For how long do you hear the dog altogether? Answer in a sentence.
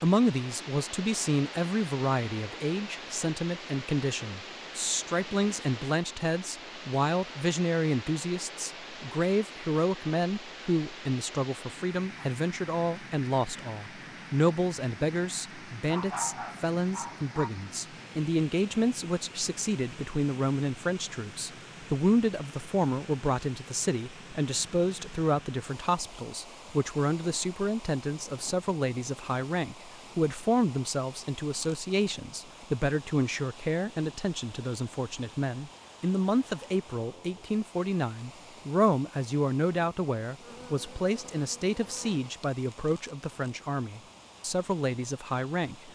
You can hear the dog for 2 seconds altogether.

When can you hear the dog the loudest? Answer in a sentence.
The loudest moment of the dog is at 16 seconds.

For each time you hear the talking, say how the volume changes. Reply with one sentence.
You can hear the talking from 0.0 to 45.9 s, at a steady volume.